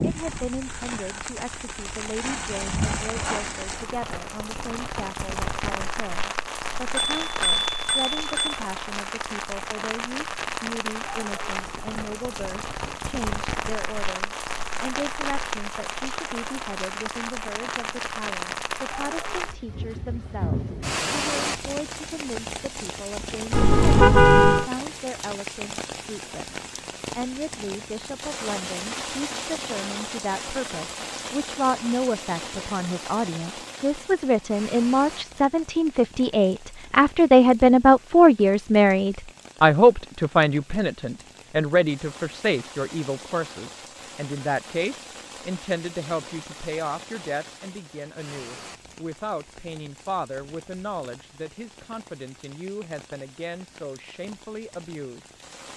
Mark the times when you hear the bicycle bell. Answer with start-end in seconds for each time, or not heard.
7.0-8.6.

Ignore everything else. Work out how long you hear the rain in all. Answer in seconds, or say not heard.
56 s.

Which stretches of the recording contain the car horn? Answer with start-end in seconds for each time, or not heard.
23.5-24.7.